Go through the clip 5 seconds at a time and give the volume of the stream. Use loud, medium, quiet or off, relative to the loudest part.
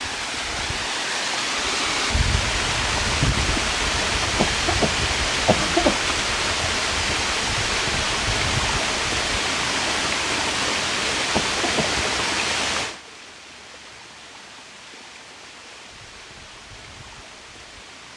loud, loud, loud, quiet.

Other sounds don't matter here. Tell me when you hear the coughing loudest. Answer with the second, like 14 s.
6 s.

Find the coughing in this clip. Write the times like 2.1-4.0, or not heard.
4.3-6.0, 11.3-12.1.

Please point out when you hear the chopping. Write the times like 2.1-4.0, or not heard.
not heard.